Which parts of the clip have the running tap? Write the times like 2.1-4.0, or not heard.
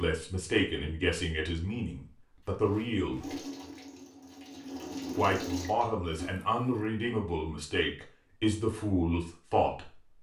3.2-6.3.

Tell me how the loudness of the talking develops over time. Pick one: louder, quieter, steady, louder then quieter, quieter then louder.
steady.